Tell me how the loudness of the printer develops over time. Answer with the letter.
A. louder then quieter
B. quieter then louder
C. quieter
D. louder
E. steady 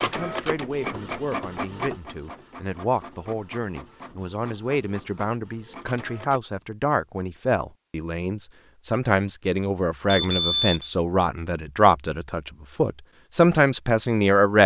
C.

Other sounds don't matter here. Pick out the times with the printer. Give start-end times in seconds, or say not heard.
0.0-6.4.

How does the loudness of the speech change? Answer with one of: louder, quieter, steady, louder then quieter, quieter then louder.
louder.